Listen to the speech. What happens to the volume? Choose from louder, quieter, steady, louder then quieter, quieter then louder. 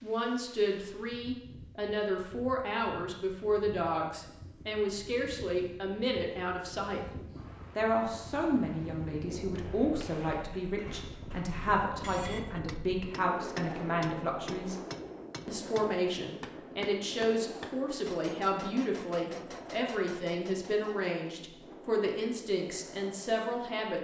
steady.